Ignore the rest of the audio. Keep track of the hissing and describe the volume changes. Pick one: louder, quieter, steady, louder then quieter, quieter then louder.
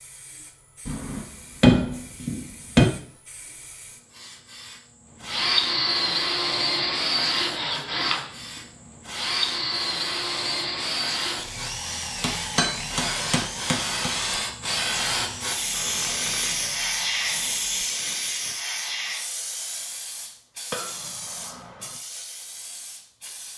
louder then quieter.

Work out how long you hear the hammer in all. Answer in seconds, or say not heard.
5 s.